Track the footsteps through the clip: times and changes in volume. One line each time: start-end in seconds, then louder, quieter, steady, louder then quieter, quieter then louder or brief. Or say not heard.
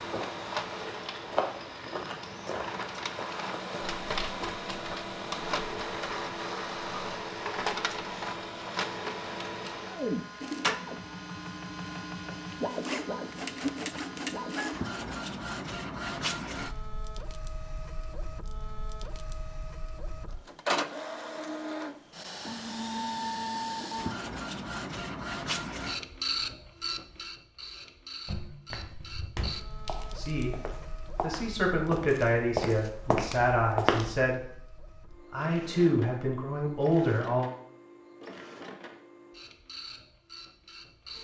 0.0-5.0 louder then quieter
28.2-34.3 louder.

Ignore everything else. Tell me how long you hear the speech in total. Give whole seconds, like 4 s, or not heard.
7 s.